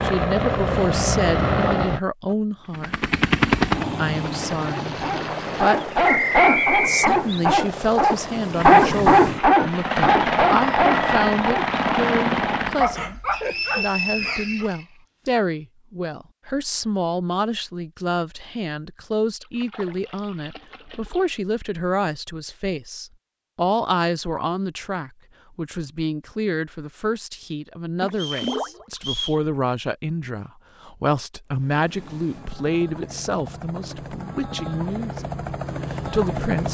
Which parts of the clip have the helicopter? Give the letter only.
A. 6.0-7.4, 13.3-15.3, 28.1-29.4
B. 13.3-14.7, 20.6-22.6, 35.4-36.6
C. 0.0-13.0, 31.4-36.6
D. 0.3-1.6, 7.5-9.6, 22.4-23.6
C.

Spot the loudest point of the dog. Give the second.
9 s.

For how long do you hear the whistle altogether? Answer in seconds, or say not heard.
5 s.